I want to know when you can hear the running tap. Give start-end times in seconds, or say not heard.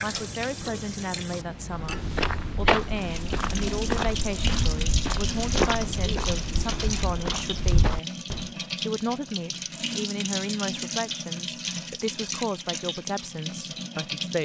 0.0-14.4.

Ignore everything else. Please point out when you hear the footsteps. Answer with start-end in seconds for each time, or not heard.
1.7-8.5.